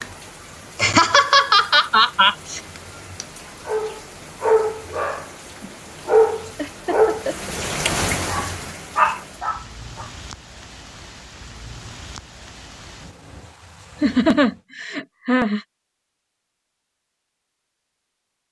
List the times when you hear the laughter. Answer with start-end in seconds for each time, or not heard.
0.8-2.6, 6.5-7.5, 14.0-15.6.